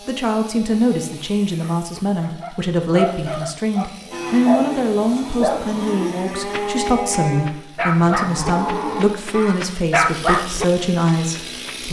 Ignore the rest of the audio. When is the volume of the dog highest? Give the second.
10 s.